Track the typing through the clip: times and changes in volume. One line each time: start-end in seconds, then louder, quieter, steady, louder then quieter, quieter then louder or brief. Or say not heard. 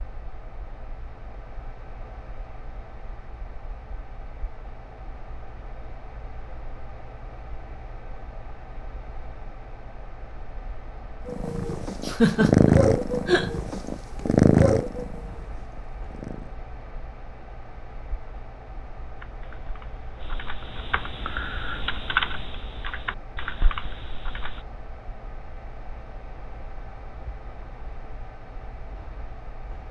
19.2-24.6 louder then quieter.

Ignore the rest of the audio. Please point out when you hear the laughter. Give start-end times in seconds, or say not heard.
12.1-13.5.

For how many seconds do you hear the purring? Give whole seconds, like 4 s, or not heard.
5 s.